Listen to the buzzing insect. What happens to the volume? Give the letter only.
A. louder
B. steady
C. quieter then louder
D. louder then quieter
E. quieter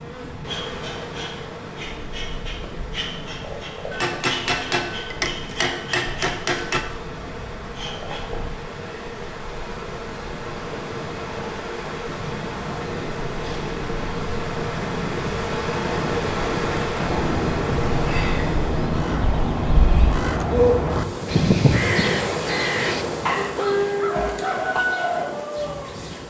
A.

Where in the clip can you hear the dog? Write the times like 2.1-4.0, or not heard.
not heard.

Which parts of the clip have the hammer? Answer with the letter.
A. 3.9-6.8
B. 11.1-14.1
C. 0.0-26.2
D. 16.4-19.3
A.